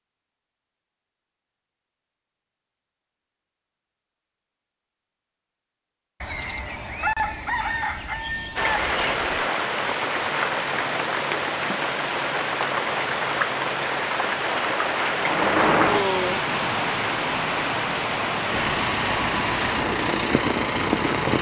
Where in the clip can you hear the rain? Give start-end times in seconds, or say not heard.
8.6-21.3.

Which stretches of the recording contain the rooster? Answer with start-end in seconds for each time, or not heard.
6.2-9.4.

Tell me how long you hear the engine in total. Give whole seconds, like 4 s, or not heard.
3 s.